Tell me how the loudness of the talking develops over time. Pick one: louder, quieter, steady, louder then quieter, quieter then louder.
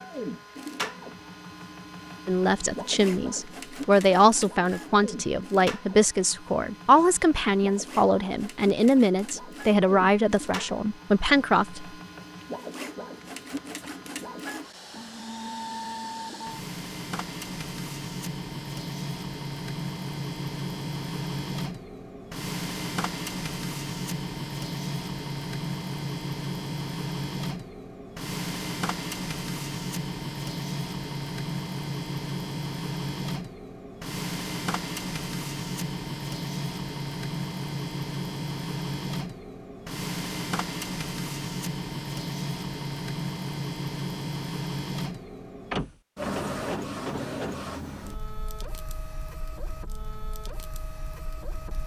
steady.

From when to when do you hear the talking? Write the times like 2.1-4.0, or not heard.
2.2-11.8.